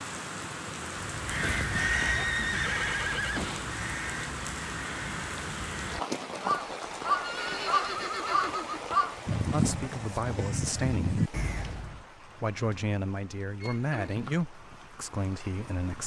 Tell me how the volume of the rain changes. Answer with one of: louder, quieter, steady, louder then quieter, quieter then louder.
quieter.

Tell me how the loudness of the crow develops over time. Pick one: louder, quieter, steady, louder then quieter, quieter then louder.
quieter then louder.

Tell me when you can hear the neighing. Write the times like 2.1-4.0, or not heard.
1.7-3.8, 7.1-8.8, 13.6-14.4.